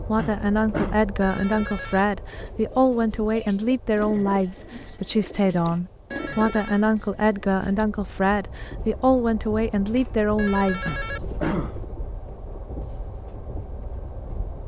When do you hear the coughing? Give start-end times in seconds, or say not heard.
0.1-0.9, 10.8-11.8.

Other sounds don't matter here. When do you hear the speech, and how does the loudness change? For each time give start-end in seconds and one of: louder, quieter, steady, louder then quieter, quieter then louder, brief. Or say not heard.
0.0-10.8 steady.